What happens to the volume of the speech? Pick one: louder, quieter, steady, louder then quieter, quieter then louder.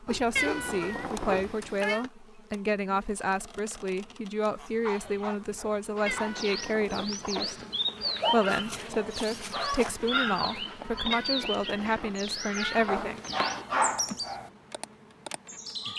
steady.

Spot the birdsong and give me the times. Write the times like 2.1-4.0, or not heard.
6.0-15.9.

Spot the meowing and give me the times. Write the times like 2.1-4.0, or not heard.
0.3-2.0, 6.0-7.2, 11.1-13.7.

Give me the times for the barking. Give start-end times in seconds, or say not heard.
0.1-1.5, 4.7-6.3, 8.0-9.9, 12.8-14.5.